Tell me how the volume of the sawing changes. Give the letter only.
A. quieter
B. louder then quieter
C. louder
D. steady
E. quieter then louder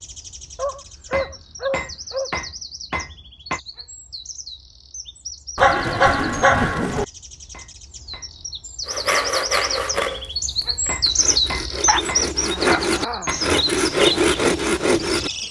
E.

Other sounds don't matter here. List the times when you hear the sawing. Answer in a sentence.
The sawing can be heard from 8.8 to 15.3 s.